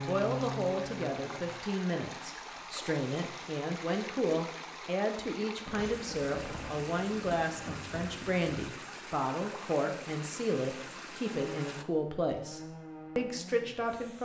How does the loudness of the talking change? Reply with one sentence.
The volume of the talking stays about the same.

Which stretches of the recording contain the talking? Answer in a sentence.
The talking can be heard from 0.1 to 14.2 s.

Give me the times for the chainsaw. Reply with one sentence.
The chainsaw can be heard from 0.0 to 1.6 s and from 11.2 to 14.2 s.